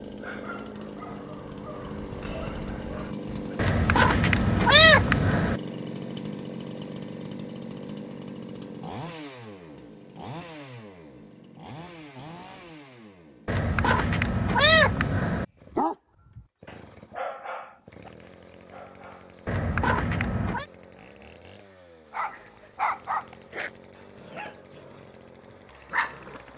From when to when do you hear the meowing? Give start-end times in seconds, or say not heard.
3.5-5.6, 13.4-15.4, 19.4-20.6.